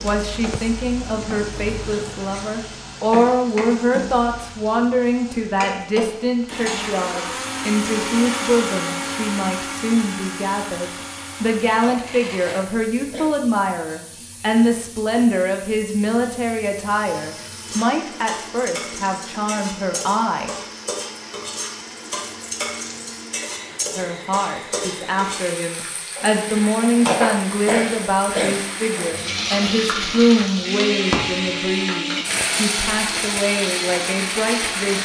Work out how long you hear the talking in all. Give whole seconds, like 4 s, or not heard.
32 s.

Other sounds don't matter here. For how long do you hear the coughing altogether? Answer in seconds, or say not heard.
3 s.